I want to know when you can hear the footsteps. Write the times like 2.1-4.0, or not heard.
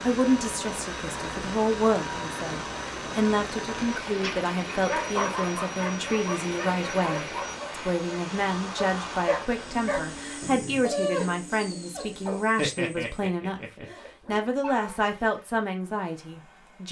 not heard.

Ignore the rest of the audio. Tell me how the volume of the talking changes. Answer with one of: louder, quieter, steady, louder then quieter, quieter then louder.
steady.